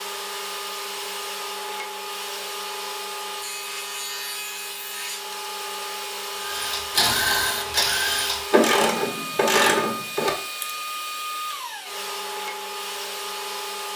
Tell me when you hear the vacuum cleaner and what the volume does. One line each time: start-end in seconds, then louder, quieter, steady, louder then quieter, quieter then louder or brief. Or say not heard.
0.0-13.9 steady.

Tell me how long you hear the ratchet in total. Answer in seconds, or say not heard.
4 s.